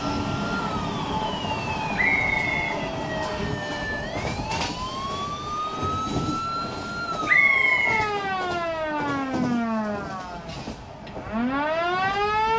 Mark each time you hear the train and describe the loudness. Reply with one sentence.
The train can be heard from 0.0 to 12.5 s, getting quieter.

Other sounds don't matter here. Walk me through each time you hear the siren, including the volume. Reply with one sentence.
You can hear the siren from 0.0 to 12.5 s, getting louder.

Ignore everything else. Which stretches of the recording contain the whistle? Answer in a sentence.
The whistle can be heard from 1.9 to 3.5 s and from 7.2 to 8.1 s.